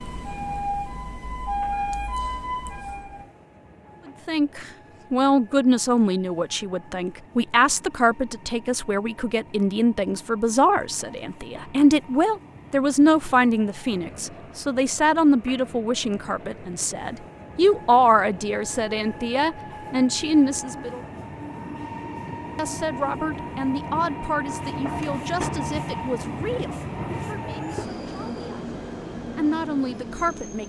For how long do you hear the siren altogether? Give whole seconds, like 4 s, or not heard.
3 s.